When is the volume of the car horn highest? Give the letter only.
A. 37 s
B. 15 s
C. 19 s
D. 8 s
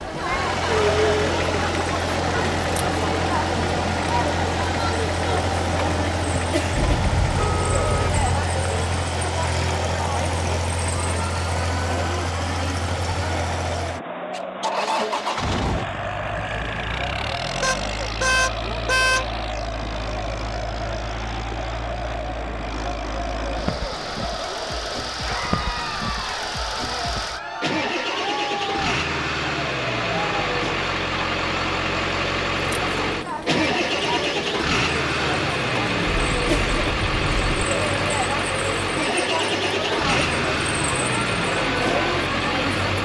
C.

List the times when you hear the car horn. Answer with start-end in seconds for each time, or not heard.
6.7-8.4, 17.6-19.3, 36.0-37.5.